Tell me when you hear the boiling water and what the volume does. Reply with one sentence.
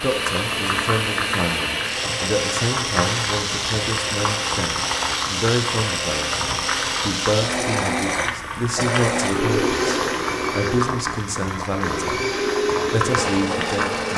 The boiling water can be heard from 0.0 to 14.1 s, at a steady volume.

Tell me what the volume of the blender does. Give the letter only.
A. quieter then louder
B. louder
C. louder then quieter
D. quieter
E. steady
E.